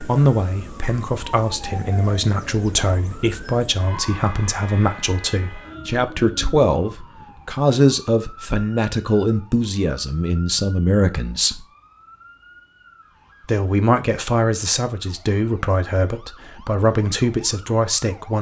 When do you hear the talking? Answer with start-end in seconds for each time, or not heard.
0.0-11.7, 13.4-18.3.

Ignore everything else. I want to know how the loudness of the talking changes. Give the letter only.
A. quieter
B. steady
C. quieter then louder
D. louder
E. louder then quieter
B.